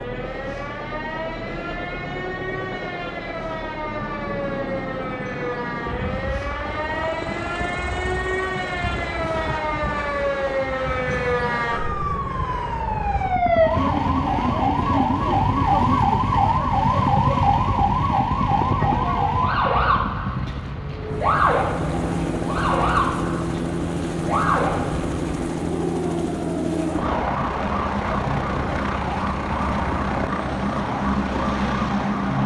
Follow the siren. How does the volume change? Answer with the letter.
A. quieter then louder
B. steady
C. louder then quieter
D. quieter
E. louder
C.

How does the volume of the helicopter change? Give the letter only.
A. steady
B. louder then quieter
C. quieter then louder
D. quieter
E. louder
E.